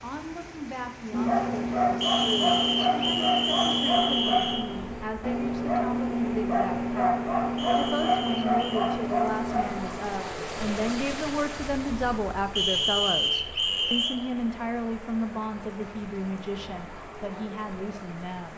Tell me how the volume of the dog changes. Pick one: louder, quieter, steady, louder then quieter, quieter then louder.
steady.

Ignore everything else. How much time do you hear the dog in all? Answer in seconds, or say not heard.
9 s.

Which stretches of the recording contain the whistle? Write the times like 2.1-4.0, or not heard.
2.0-4.7, 7.5-9.0, 12.6-14.2.